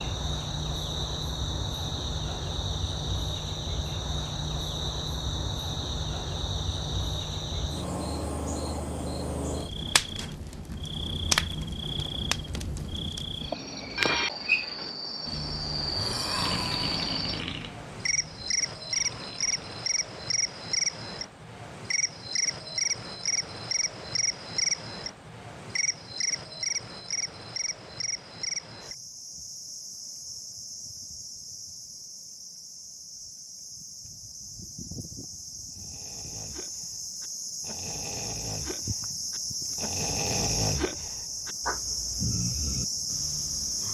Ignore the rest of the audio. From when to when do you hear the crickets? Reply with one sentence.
The crickets can be heard from 0.0 to 43.8 s.